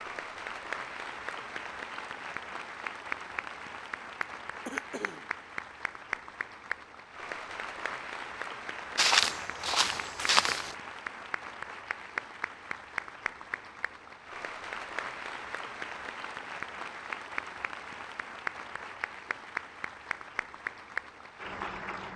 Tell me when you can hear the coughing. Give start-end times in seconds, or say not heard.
4.2-5.3.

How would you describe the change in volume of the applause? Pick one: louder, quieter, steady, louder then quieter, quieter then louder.
steady.